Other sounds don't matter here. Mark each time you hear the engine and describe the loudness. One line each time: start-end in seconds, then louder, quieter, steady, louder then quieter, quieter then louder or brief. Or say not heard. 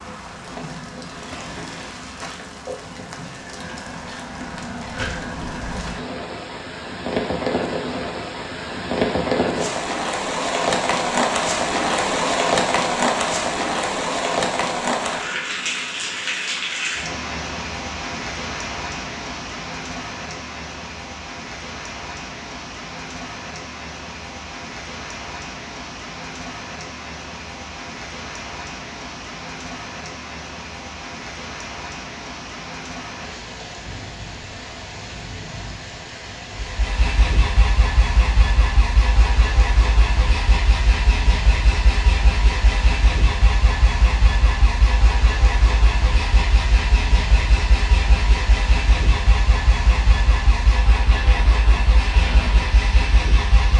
36.5-53.7 steady.